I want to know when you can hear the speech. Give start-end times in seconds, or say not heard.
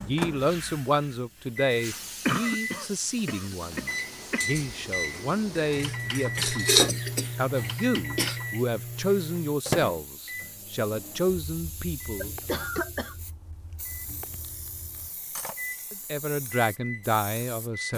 0.0-12.3, 15.9-17.9.